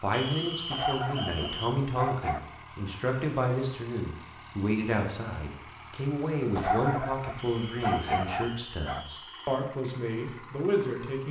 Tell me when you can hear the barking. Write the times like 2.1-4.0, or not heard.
0.7-2.4, 6.5-9.1.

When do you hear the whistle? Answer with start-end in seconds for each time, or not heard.
0.1-1.8, 7.4-9.6.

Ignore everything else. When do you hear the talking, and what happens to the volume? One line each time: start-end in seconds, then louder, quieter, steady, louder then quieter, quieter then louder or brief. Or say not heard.
0.0-11.2 steady.